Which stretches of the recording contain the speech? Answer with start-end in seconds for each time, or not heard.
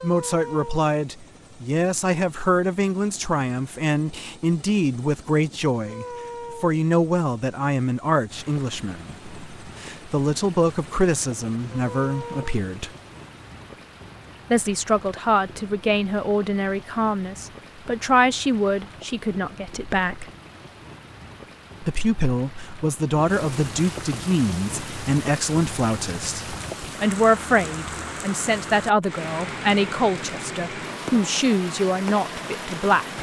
0.0-12.9, 14.5-20.3, 21.8-33.1.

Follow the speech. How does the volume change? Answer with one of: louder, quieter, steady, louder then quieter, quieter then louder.
steady.